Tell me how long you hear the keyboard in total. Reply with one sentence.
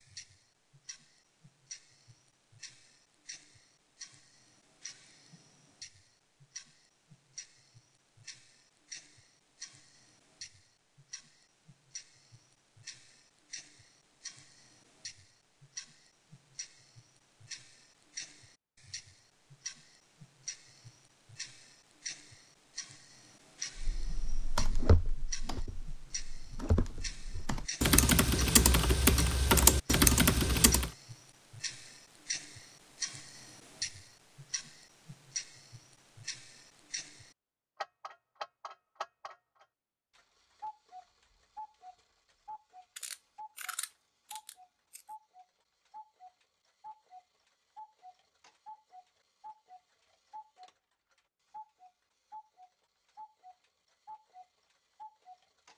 You can hear the keyboard for 7 seconds altogether.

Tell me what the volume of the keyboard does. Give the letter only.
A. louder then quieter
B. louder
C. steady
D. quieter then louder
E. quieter
D.